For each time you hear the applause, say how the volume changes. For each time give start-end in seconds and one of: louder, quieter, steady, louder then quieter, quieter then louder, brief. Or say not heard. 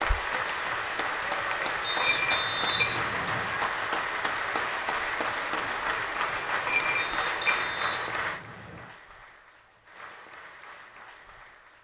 0.0-11.8 quieter.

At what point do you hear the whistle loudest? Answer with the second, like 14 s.
3 s.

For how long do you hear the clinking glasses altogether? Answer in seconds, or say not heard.
3 s.